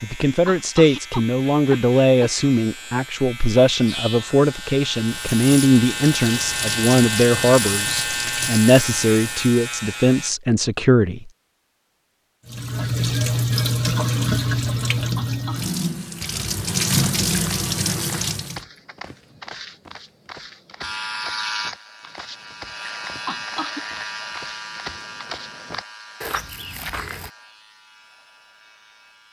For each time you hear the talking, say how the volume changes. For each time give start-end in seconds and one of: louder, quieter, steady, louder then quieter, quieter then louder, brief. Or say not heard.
0.0-11.3 steady.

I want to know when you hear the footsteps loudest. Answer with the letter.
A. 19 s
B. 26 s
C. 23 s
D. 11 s
B.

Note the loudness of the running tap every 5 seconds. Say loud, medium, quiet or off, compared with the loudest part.
off, medium, loud, loud, off, off.